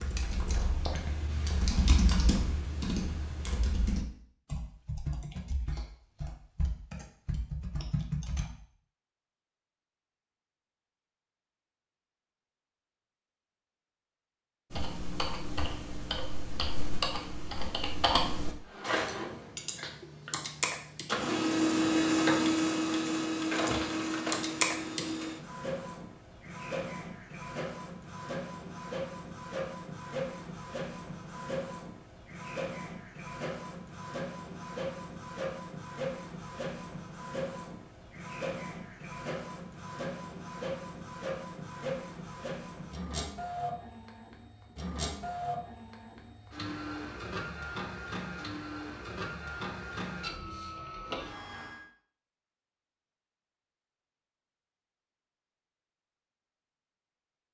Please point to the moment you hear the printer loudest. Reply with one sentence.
The loudest moment of the printer is at 22 seconds.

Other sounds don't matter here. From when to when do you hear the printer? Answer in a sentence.
The printer can be heard from 18.6 to 51.9 s.